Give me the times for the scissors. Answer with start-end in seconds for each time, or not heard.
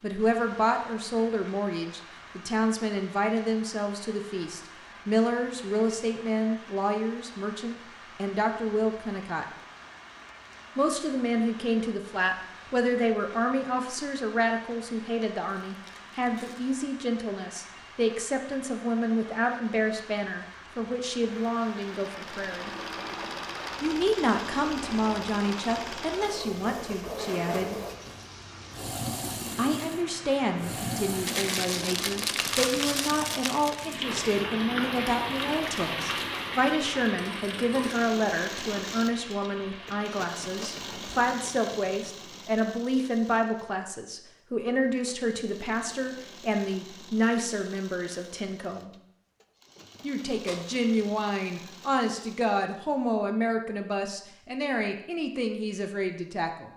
not heard.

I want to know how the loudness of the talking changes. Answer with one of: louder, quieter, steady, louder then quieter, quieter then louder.
steady.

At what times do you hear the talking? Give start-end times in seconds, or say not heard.
0.0-9.4, 10.8-22.7, 23.8-27.8, 29.6-48.9, 50.0-56.7.